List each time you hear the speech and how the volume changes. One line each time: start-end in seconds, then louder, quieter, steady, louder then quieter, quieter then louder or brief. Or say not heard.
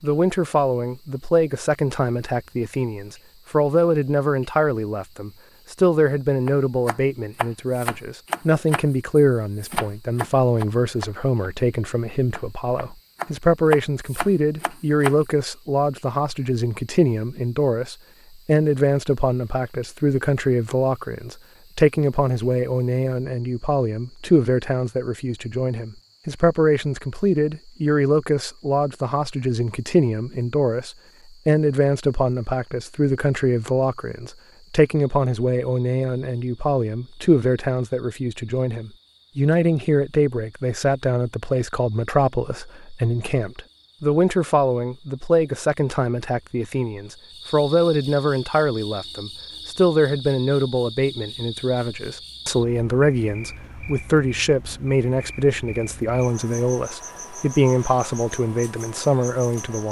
0.0-59.8 steady.